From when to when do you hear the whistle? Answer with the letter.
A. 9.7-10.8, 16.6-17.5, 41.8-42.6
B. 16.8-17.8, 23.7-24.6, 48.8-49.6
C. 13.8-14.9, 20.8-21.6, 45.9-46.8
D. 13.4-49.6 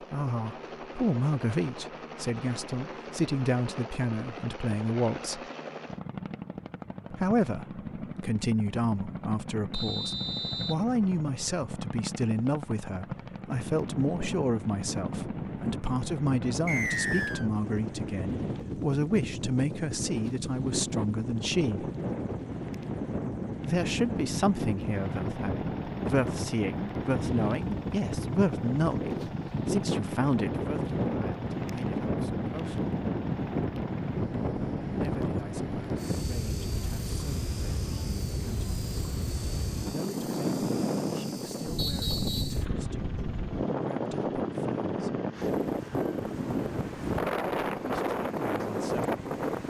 A.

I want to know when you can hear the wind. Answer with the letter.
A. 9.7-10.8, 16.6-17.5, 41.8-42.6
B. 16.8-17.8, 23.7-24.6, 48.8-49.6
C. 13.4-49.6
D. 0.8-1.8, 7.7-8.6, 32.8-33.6
C.